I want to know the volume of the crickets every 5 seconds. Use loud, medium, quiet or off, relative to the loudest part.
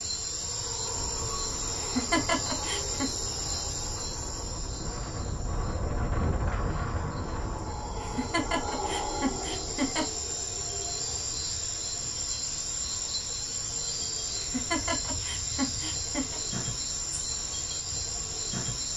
loud, medium, loud, loud.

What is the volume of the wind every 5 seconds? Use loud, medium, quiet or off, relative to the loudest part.
medium, loud, off, off.